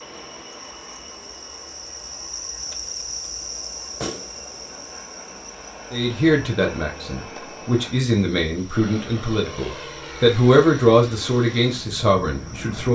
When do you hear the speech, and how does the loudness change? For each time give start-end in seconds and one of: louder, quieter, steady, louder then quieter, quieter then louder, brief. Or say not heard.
5.9-12.9 louder then quieter.